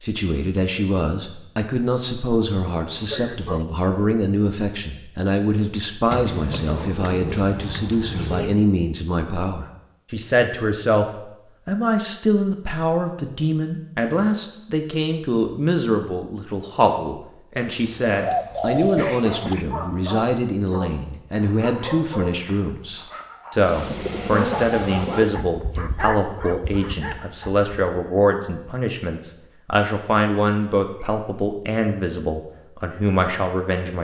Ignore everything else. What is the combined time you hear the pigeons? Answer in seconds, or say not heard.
6 s.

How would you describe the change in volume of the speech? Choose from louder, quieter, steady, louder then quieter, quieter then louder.
steady.